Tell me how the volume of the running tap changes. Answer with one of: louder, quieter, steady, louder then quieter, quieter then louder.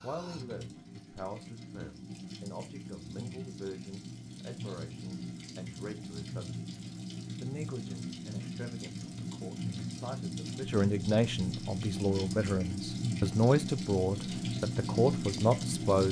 louder.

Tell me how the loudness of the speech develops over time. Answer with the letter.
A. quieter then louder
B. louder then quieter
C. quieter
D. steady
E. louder
E.